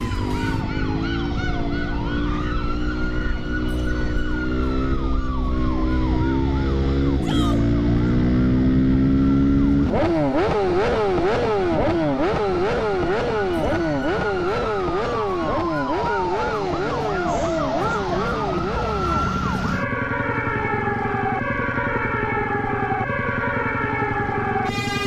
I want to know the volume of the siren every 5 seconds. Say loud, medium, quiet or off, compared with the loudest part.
medium, quiet, medium, loud, loud.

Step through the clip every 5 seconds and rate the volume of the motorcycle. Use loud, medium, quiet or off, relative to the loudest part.
medium, loud, loud, medium, medium.